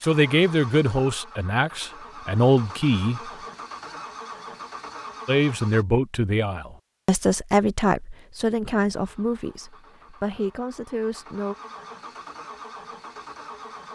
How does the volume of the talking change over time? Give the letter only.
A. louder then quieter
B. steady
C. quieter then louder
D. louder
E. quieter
E.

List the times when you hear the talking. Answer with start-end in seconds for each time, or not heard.
0.0-3.2, 5.2-11.6.